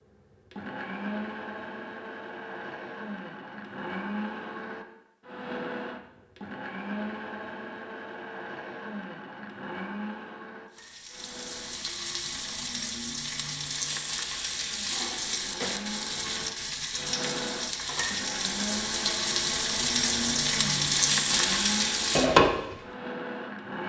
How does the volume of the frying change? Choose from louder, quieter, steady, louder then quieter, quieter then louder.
louder.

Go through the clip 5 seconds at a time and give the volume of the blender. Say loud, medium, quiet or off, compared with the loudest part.
loud, loud, medium, loud, loud.